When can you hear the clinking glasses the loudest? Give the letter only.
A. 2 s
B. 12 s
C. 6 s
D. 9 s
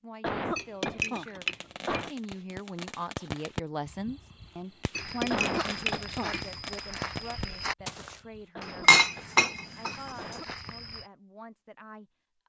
D.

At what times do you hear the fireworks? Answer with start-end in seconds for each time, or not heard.
0.8-8.5.